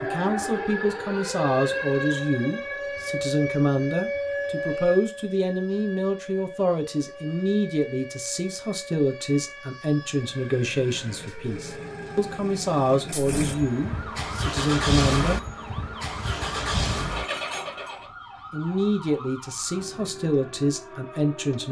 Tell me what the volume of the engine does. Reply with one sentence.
The volume of the engine goes up.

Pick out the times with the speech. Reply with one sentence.
The speech can be heard from 0.0 to 15.4 s and from 18.5 to 21.6 s.